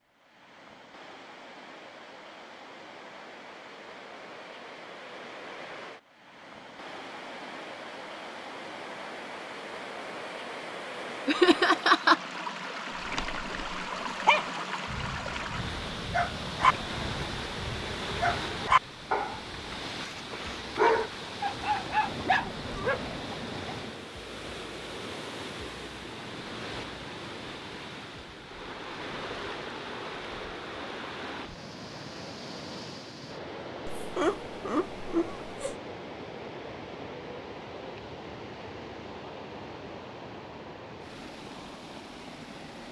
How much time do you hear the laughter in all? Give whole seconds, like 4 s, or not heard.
3 s.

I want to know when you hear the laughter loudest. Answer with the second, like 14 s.
12 s.